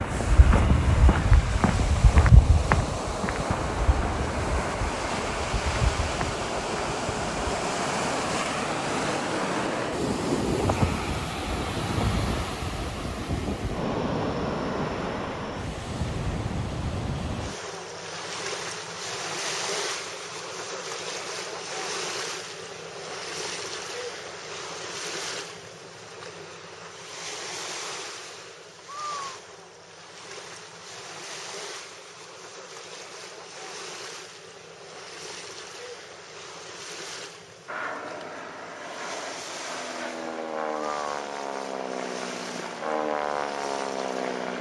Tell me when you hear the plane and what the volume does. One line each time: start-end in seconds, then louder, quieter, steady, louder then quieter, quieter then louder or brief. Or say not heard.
37.6-44.5 louder.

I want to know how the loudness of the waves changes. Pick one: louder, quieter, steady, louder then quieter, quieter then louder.
quieter.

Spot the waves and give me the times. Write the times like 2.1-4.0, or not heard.
0.0-44.5.